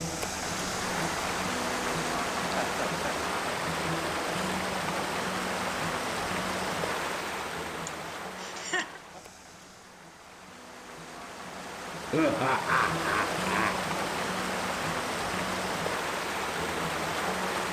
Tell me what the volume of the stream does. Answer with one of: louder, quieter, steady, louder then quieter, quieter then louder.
quieter then louder.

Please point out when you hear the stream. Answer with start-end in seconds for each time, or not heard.
0.0-17.6.